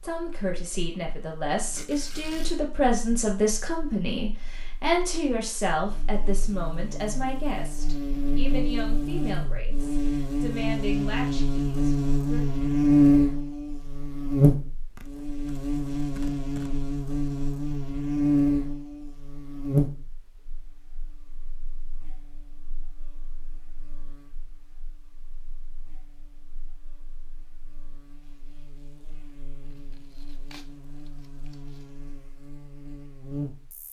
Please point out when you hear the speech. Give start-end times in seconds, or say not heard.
0.0-12.4.